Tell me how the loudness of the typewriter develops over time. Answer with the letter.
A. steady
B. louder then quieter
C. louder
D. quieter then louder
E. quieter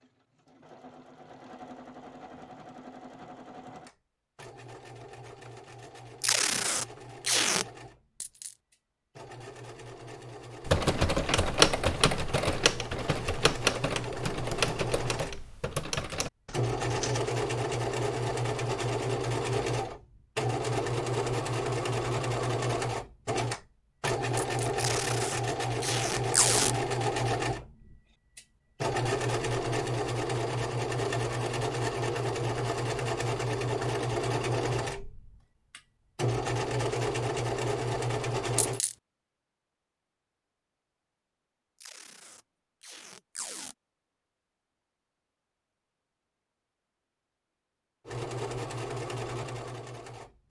E.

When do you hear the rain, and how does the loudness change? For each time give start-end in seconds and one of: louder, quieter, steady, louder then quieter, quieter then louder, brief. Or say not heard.
not heard.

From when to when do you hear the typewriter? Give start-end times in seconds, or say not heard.
10.7-17.2.